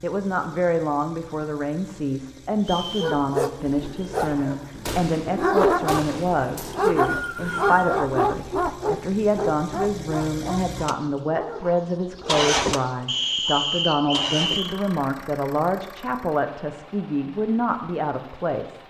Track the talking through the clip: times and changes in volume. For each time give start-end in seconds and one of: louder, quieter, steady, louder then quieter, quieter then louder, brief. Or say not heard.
0.0-18.8 steady.